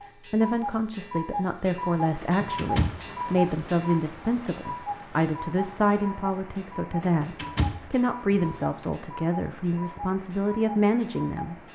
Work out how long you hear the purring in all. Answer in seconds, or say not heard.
not heard.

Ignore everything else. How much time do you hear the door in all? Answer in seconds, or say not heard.
3 s.